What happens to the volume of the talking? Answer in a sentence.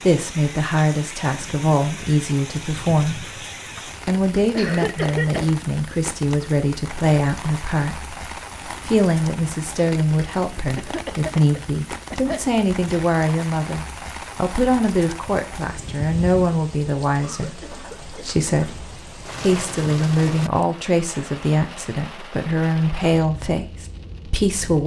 The loudness of the talking stays about the same.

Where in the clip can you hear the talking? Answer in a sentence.
The talking can be heard from 0.0 to 3.3 s and from 4.0 to 24.8 s.